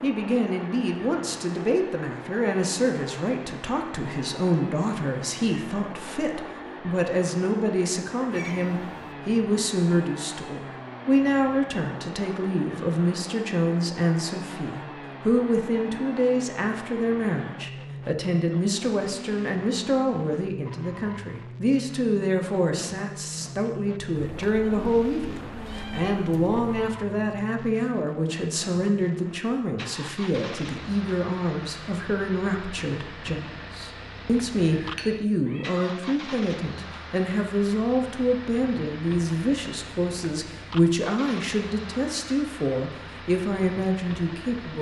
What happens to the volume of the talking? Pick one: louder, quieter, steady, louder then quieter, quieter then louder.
steady.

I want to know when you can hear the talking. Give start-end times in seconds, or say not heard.
0.0-44.7.